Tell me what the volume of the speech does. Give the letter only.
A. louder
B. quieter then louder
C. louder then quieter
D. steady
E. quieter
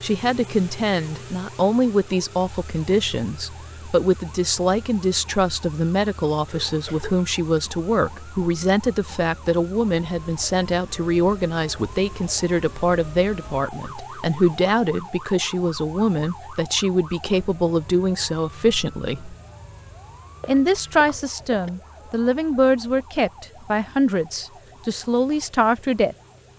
D.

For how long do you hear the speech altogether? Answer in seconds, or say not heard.
25 s.